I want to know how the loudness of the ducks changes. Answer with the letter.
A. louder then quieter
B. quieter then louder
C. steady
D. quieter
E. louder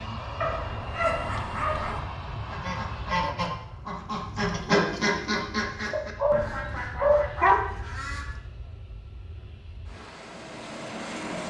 A.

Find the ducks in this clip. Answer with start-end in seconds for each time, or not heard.
0.8-8.3.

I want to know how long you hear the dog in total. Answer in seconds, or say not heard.
4 s.